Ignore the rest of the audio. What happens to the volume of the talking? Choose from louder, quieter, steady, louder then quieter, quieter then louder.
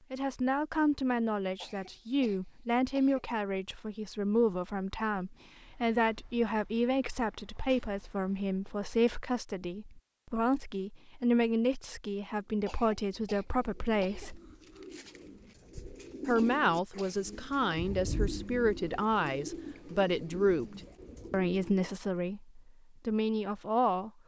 steady.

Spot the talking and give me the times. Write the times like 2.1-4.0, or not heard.
0.1-14.4, 16.2-24.1.